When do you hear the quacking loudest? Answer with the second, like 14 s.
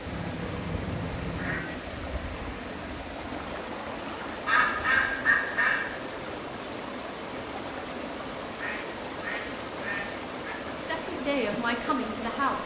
5 s.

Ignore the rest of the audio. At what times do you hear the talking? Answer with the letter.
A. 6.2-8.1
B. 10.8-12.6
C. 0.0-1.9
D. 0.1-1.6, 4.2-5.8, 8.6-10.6
B.